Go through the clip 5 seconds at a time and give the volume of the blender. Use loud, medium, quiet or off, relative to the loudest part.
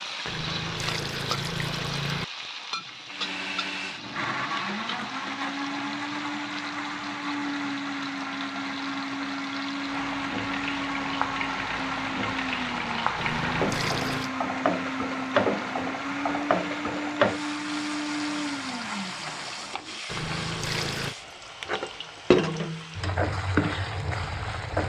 loud, loud, loud, loud, off.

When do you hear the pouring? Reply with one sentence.
The pouring can be heard from 0.2 to 2.2 s, from 13.2 to 14.3 s and from 20.1 to 21.1 s.